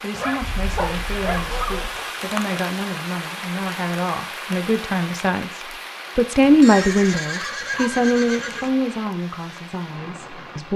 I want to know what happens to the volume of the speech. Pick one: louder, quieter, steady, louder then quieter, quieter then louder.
louder then quieter.